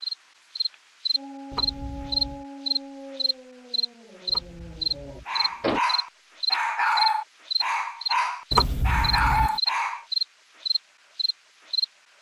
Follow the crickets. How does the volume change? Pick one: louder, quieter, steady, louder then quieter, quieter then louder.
steady.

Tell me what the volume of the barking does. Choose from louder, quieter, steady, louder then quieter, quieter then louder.
quieter then louder.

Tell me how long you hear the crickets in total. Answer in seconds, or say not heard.
12 s.